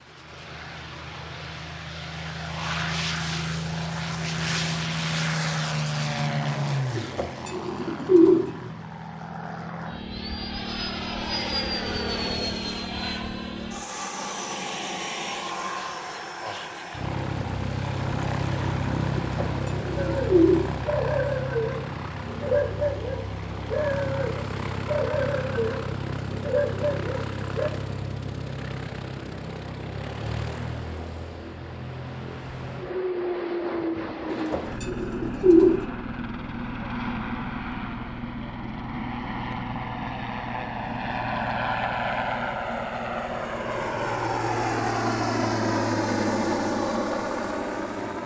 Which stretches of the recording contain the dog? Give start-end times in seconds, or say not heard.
19.9-27.7.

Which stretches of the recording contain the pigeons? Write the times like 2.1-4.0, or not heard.
7.0-8.4, 19.1-20.6, 34.2-35.8.